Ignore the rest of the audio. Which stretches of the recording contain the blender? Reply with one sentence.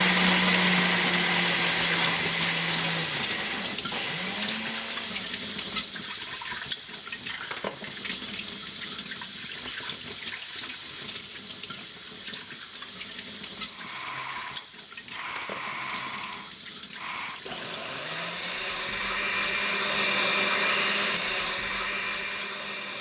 The blender can be heard from 0.0 to 5.4 s and from 13.7 to 22.9 s.